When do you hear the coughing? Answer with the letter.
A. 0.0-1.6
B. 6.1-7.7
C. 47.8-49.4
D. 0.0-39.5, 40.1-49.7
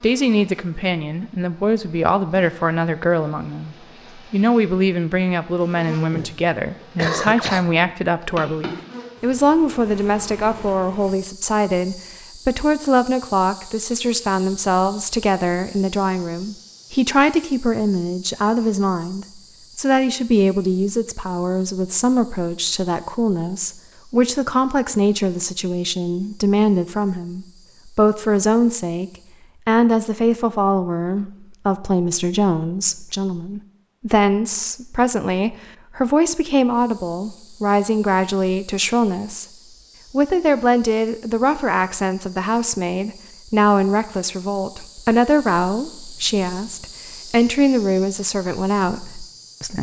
B.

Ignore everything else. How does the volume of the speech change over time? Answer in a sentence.
The loudness of the speech stays about the same.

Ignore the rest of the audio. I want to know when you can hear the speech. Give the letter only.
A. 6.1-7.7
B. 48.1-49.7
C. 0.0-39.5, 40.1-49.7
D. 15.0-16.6
C.